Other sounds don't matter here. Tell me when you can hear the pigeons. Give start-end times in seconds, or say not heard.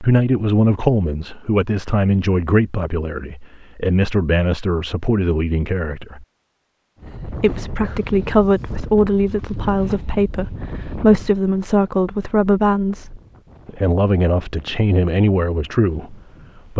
not heard.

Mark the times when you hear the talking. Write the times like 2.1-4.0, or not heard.
0.0-6.2, 7.3-16.7.